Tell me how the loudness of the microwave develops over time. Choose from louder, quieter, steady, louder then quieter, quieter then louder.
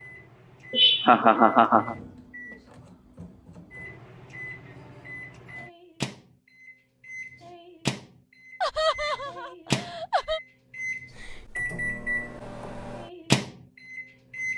louder.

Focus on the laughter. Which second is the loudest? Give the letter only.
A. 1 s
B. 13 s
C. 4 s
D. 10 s
A.